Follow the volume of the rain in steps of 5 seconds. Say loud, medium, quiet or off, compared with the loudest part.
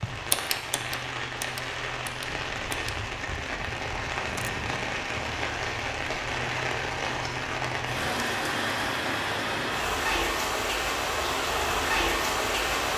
medium, loud, loud.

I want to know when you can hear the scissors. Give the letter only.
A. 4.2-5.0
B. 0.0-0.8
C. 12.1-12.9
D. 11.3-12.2
A.